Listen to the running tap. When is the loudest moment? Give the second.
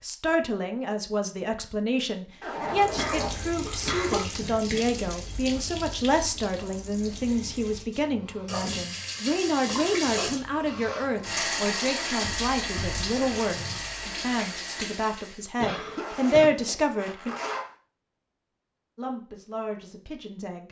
12 s.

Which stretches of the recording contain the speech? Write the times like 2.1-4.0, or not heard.
0.0-17.4, 18.9-20.6.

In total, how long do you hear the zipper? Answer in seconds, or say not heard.
3 s.